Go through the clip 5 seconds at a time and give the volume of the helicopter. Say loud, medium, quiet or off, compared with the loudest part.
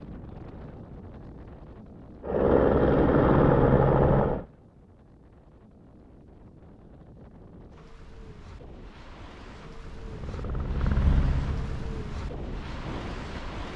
loud, off, quiet.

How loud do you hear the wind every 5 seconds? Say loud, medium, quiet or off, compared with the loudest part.
medium, medium, loud.